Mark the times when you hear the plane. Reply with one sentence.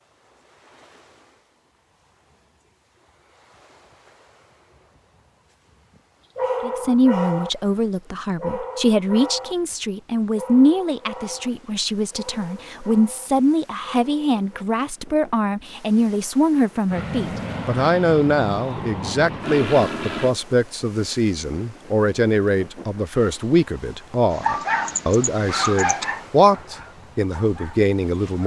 The plane can be heard from 16.9 to 20.4 s.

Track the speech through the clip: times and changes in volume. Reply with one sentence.
The speech can be heard from 6.6 to 28.4 s, at a steady volume.